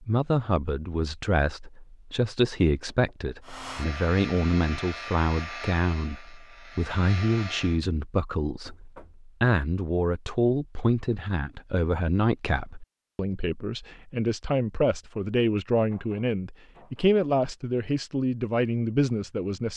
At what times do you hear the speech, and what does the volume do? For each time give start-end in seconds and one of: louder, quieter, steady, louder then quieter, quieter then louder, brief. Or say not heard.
0.0-19.7 steady.